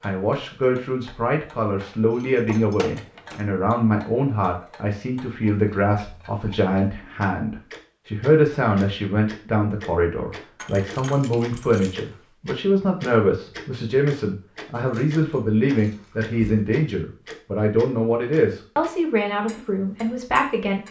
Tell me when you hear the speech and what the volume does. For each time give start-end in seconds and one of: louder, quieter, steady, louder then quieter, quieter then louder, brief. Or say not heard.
0.0-20.8 steady.